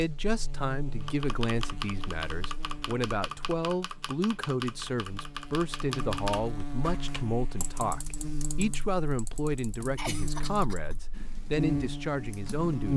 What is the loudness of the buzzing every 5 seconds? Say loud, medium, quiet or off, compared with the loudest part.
quiet, medium, loud.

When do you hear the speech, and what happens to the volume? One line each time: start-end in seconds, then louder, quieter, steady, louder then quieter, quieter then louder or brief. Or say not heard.
0.0-12.9 steady.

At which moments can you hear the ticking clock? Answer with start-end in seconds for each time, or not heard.
not heard.